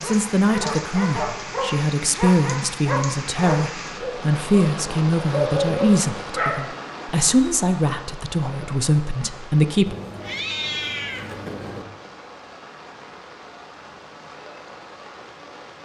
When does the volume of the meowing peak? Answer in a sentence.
The volume of the meowing peaks at 11 seconds.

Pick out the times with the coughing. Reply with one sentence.
The coughing can't be heard in this clip.